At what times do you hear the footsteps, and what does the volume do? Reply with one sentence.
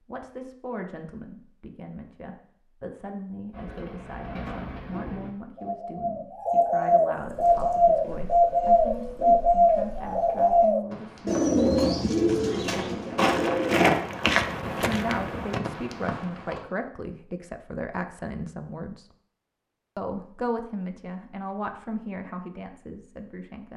You can hear the footsteps from 7.2 to 16.6 s, getting louder then quieter.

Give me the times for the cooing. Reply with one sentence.
You can hear the cooing from 3.5 to 13.8 s.